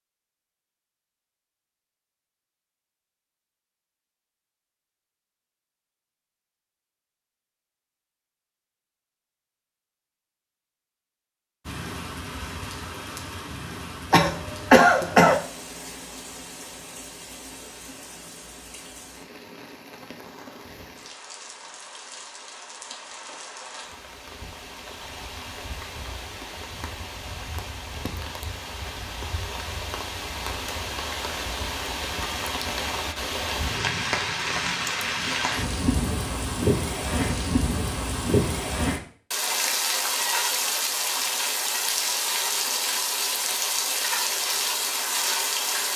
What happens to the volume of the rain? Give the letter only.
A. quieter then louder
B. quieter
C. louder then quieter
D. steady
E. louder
E.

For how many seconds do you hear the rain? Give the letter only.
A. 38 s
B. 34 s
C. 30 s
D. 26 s
B.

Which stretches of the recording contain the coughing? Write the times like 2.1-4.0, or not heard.
14.1-15.4.